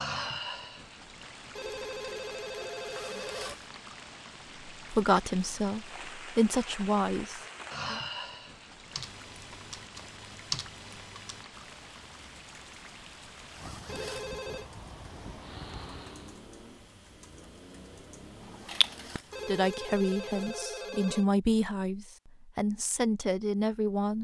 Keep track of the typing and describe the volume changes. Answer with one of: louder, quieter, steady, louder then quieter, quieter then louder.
quieter then louder.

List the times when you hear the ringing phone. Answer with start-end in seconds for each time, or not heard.
1.6-3.5, 13.8-14.7, 19.3-21.3.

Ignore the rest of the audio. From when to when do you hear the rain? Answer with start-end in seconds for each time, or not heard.
0.0-16.4.